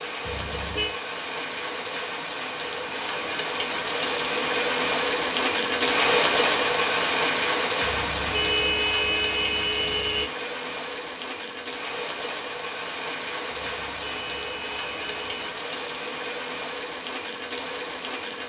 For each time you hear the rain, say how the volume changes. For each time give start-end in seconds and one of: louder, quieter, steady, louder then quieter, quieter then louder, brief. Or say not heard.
0.0-18.4 louder then quieter.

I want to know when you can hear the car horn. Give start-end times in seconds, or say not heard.
0.2-0.9, 7.8-10.3, 13.6-15.4.